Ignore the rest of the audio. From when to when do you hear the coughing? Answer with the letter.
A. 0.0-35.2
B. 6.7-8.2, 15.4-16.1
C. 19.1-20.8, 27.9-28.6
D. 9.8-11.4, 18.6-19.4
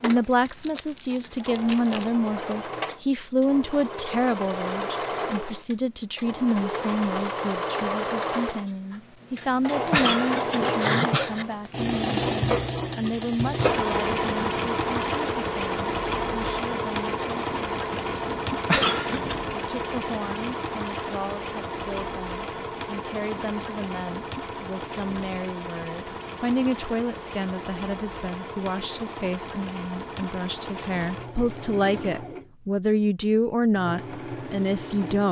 D.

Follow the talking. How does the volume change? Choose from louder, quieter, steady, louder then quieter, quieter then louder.
quieter then louder.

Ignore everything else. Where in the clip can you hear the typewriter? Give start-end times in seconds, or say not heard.
not heard.